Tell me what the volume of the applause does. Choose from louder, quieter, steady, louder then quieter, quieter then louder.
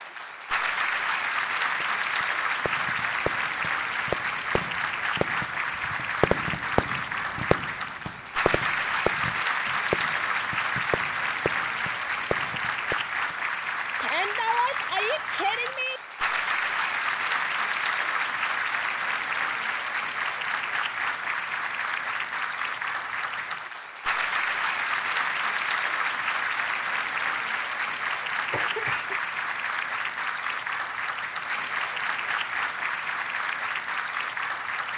steady.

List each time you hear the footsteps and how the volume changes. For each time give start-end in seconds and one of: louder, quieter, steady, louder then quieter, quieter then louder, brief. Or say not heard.
not heard.